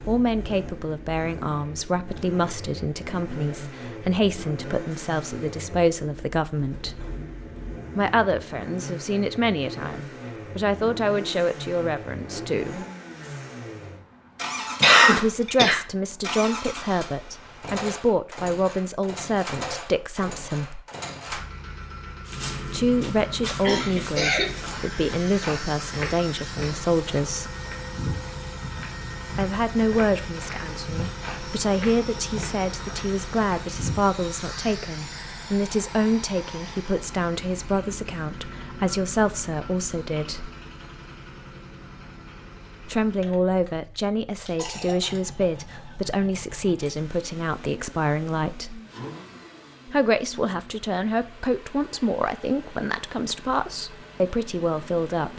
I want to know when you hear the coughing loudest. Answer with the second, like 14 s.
15 s.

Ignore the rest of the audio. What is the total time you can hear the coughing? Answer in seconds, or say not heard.
3 s.